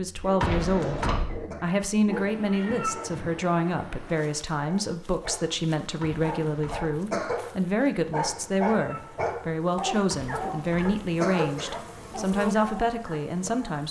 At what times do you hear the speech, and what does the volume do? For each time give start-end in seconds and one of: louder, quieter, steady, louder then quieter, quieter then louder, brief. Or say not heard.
0.0-13.8 steady.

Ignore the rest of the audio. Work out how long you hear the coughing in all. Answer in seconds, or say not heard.
4 s.